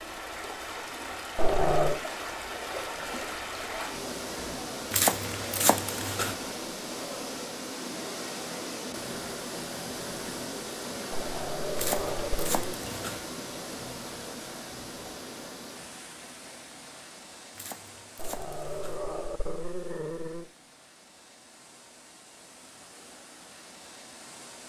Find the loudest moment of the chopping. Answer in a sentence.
The loudest moment of the chopping is at 5 seconds.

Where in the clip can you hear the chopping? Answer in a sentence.
You can hear the chopping from 4.9 to 6.3 s, from 11.8 to 13.2 s and from 17.6 to 19.0 s.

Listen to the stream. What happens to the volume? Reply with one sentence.
The loudness of the stream goes down.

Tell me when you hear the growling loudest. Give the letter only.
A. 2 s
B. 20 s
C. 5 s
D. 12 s
A.